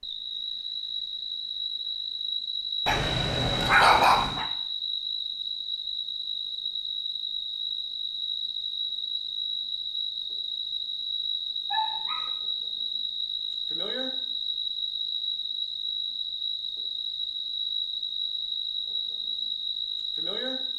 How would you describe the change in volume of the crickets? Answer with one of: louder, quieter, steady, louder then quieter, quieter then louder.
steady.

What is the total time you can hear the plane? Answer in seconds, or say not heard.
not heard.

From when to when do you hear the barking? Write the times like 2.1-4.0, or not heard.
2.9-4.5, 11.7-12.3.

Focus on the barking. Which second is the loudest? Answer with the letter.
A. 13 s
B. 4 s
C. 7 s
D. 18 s
B.